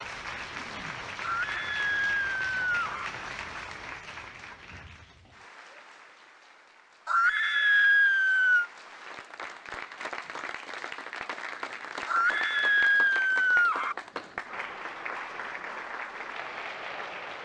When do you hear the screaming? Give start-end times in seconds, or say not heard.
1.2-3.1, 7.0-8.7, 12.1-13.9.